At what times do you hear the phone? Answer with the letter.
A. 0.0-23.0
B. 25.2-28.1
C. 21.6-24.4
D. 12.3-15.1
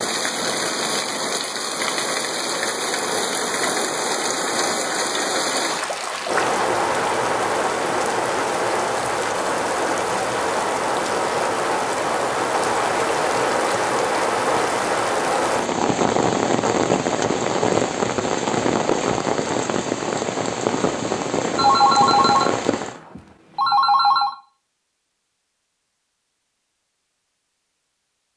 C.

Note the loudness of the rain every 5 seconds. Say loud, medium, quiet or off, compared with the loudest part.
loud, loud, loud, loud, loud, off.